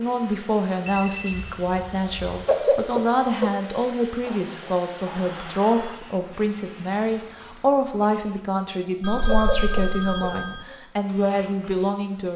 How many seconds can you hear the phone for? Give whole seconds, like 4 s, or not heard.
5 s.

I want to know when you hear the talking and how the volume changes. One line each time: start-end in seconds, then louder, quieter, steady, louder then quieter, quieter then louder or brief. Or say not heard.
0.0-12.3 steady.